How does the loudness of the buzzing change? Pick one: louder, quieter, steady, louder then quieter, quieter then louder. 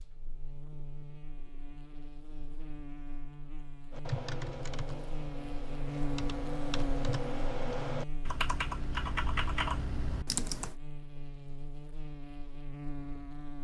louder then quieter.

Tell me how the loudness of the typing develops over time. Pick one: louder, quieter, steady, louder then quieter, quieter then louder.
louder.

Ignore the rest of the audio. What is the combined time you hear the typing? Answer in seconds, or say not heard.
7 s.